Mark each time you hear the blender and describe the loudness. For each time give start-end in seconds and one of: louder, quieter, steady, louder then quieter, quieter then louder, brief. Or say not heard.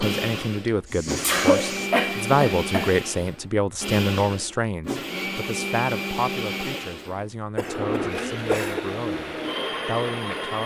0.0-10.6 steady.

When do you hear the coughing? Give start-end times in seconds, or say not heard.
1.2-2.9, 7.5-8.8.